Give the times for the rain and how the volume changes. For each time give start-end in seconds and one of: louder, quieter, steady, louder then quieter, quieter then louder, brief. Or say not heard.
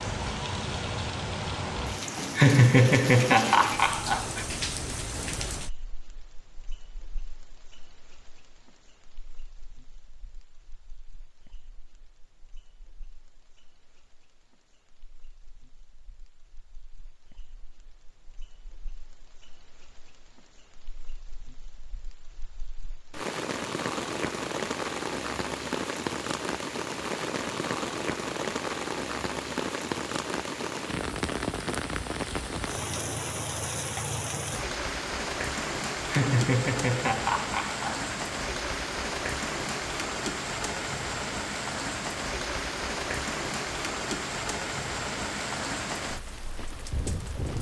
0.0-47.5 quieter then louder.